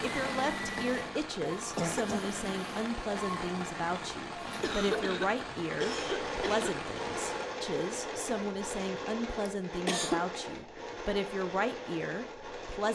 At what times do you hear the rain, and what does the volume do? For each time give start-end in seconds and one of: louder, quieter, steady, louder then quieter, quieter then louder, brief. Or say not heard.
0.0-7.6 steady.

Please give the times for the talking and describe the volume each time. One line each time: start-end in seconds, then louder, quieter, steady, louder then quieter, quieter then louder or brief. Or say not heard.
0.0-12.9 steady.